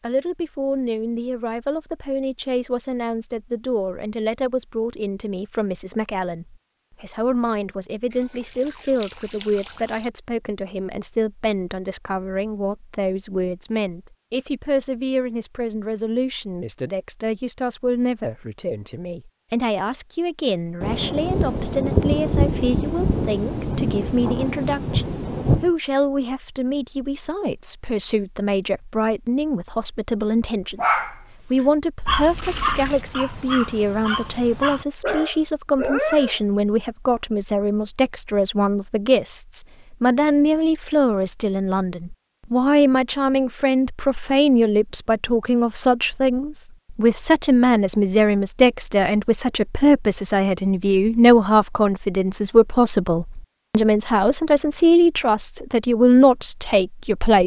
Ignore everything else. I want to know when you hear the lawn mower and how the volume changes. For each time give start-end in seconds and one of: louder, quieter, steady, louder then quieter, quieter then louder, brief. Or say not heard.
not heard.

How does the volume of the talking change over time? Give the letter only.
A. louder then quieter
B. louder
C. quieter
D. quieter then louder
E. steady
B.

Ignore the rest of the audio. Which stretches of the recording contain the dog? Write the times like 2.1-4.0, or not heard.
30.7-36.4.